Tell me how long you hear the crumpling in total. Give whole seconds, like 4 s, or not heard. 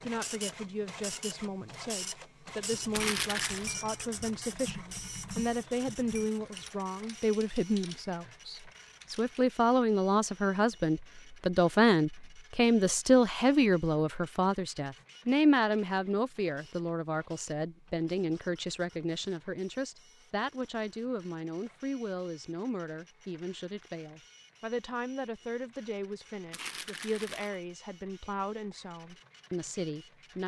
2 s.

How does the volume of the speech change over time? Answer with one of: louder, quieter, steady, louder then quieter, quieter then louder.
louder then quieter.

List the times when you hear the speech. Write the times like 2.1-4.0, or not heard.
0.0-30.4.